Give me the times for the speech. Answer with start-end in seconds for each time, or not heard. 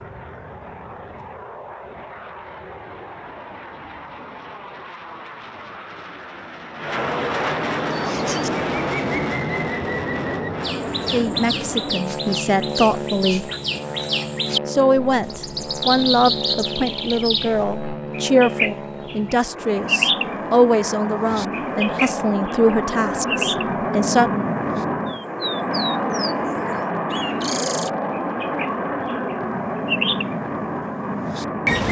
11.1-13.5, 14.7-24.4.